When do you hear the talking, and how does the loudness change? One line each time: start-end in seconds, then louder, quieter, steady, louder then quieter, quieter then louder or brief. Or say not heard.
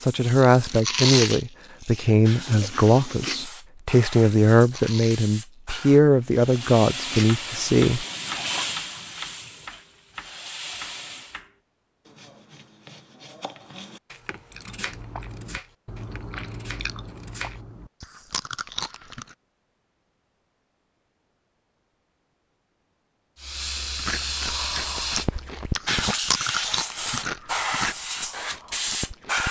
0.0-8.1 steady.